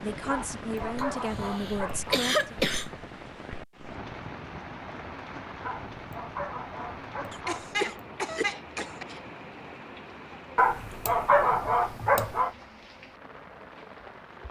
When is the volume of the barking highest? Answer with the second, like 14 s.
11 s.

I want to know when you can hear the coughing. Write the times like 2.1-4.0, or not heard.
0.9-2.9, 7.3-9.2.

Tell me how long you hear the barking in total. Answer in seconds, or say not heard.
6 s.